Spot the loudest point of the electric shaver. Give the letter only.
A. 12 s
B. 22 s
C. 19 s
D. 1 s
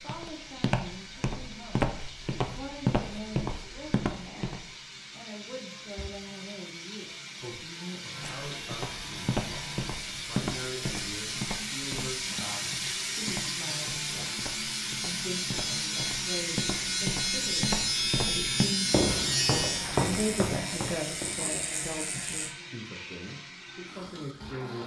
C.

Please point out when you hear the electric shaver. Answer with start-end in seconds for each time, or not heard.
8.1-22.6.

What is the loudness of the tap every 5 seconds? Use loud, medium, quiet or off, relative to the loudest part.
medium, medium, loud, loud, medium.